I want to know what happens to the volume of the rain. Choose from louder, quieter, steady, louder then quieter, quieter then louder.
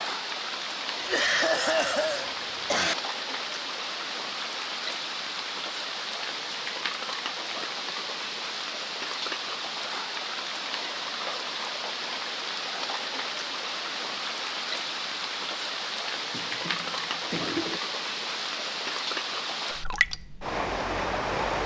steady.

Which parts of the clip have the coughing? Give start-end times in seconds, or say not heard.
1.0-3.0, 16.3-17.8.